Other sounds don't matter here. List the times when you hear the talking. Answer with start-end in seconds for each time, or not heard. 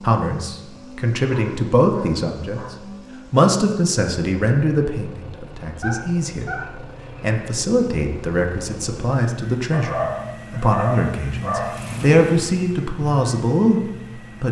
0.0-6.6, 7.2-14.4.